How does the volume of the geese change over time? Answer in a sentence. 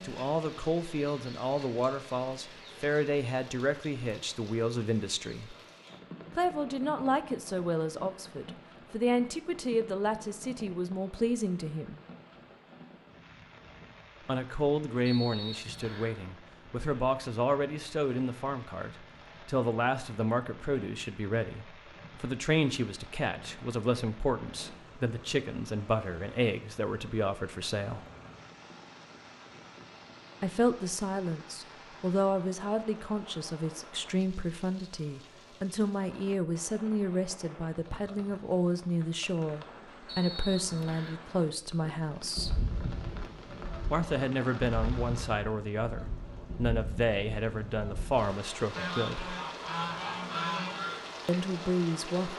The loudness of the geese goes up.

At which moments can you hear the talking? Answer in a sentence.
You can hear the talking from 0.0 to 5.5 s, from 6.3 to 12.0 s, from 14.2 to 28.1 s, from 30.4 to 42.5 s, from 43.9 to 49.4 s and from 51.2 to 52.3 s.